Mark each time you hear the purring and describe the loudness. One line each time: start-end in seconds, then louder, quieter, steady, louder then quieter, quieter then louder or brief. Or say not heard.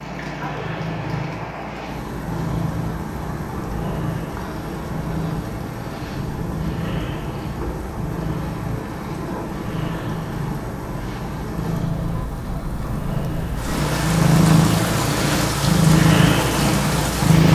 0.0-17.5 louder.